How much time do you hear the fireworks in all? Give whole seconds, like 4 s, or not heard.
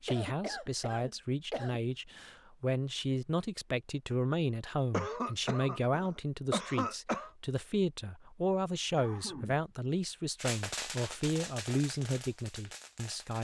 3 s.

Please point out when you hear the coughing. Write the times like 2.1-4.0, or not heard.
0.1-1.8, 4.9-7.3, 8.9-9.8.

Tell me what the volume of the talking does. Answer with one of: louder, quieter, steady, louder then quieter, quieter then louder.
steady.